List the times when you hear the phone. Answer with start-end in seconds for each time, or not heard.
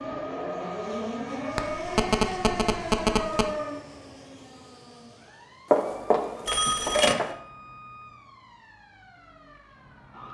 1.6-3.5, 5.7-7.3.